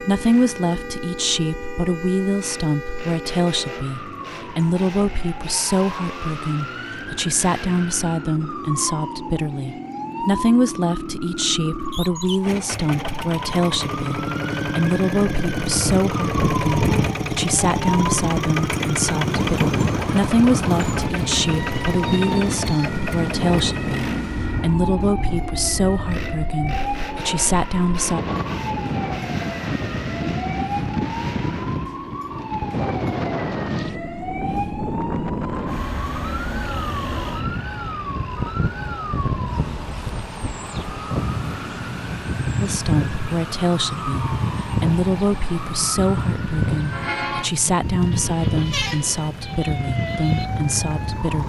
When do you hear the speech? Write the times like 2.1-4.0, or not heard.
0.0-28.2, 42.6-51.4.